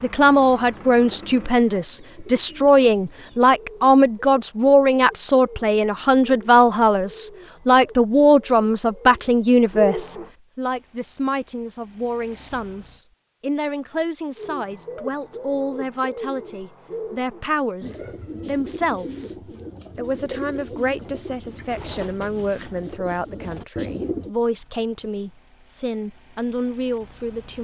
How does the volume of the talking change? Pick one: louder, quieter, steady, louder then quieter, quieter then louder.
quieter.